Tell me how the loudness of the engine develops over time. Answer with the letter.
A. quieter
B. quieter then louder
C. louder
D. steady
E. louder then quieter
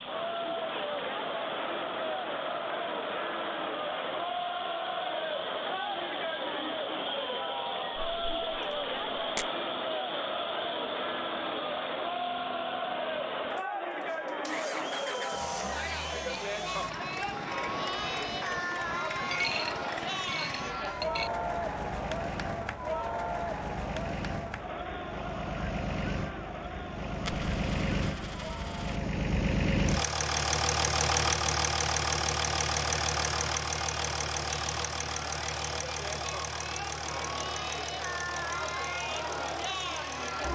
C.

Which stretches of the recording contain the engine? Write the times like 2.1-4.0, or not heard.
0.0-40.4.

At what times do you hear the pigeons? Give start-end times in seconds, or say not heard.
not heard.